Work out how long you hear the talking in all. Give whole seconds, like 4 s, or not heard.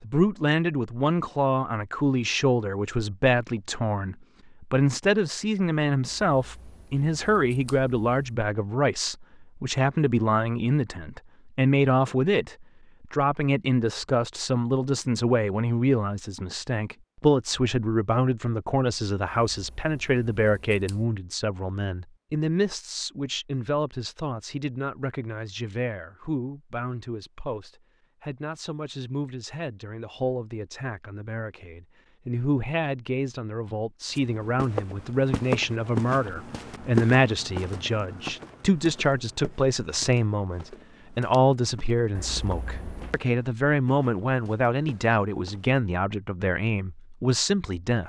48 s.